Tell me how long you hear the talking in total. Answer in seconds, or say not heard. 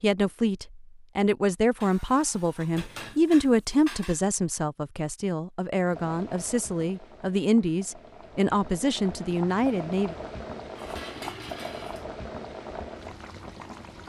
10 s.